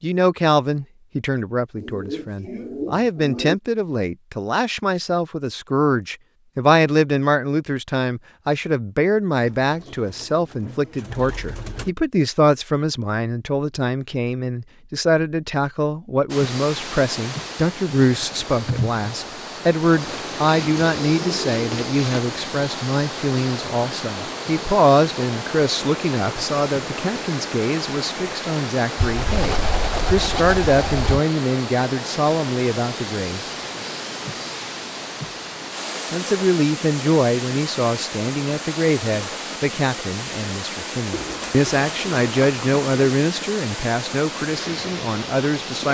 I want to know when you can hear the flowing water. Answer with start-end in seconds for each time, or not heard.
16.3-45.8.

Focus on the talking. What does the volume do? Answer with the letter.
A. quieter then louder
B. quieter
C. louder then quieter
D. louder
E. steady
E.